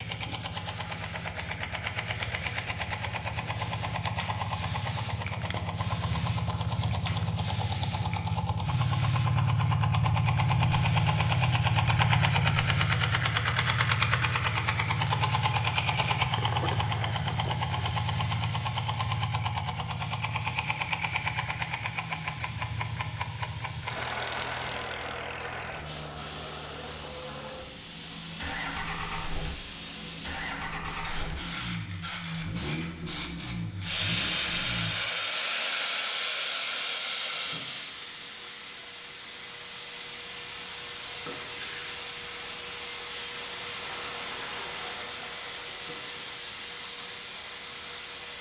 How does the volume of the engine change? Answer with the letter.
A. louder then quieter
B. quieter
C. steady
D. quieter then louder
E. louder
A.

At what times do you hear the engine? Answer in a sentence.
You can hear the engine from 0.0 to 35.0 s.